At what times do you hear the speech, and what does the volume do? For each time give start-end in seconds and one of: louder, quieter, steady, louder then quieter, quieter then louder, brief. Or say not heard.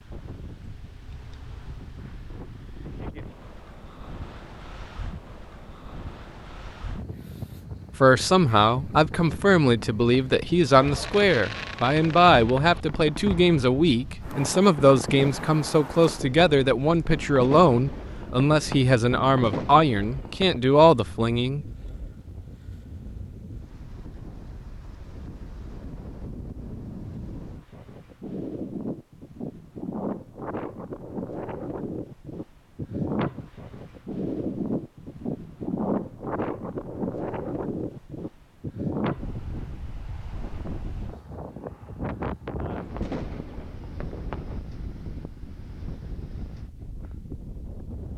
8.0-21.6 steady.